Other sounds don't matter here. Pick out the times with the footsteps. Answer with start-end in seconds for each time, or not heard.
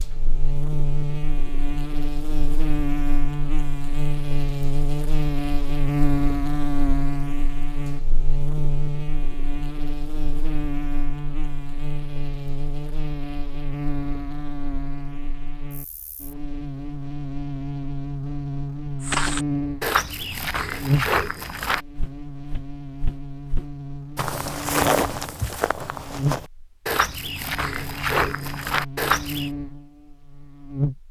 19.0-29.5.